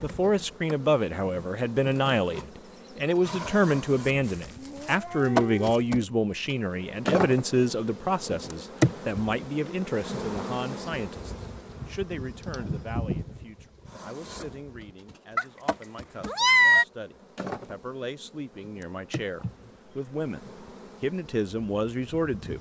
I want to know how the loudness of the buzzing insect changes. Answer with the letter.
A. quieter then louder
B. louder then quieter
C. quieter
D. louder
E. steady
B.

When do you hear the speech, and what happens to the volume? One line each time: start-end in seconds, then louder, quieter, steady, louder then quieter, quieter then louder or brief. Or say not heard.
0.0-22.5 quieter then louder.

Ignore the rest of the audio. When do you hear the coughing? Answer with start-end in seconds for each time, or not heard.
19.4-20.1.